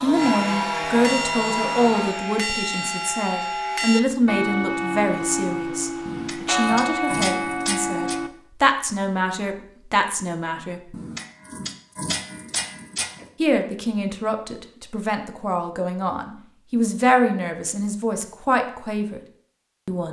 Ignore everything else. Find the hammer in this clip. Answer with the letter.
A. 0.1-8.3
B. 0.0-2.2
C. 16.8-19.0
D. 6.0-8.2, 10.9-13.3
D.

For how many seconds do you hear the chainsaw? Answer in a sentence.
You can hear the chainsaw for 2 seconds altogether.